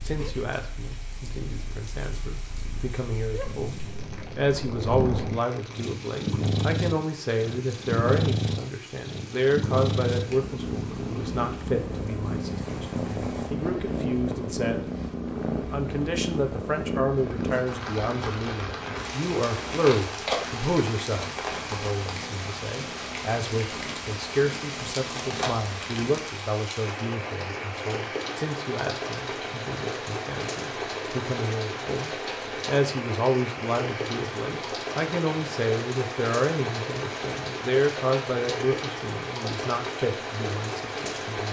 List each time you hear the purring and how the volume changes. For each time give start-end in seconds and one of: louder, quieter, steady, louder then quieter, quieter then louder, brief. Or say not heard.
0.0-26.4 louder then quieter.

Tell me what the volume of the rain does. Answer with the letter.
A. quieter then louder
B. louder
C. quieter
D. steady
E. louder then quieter
B.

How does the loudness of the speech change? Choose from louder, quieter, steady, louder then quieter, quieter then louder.
steady.